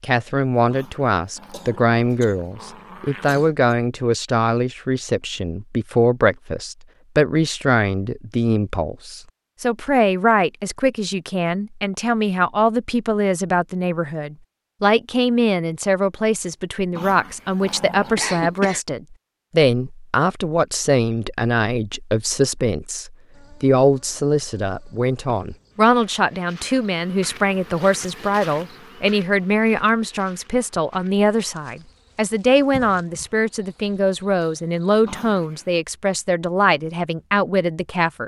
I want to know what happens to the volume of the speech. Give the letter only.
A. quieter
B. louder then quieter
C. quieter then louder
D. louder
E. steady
E.